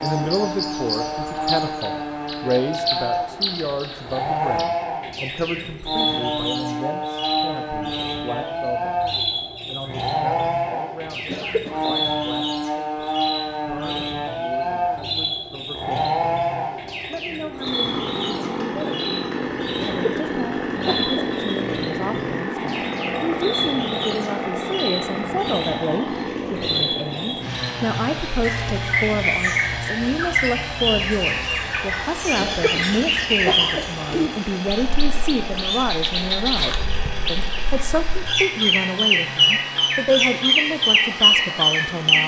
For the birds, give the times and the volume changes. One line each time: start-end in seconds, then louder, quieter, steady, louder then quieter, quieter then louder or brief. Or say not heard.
0.0-42.2 louder.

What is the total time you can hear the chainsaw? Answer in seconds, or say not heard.
42 s.